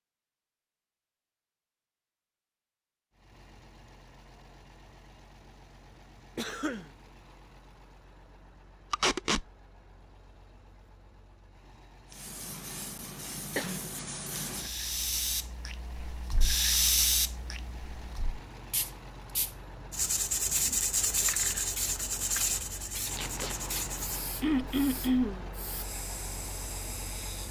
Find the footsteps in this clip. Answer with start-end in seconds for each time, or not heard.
not heard.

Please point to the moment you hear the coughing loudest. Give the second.
25 s.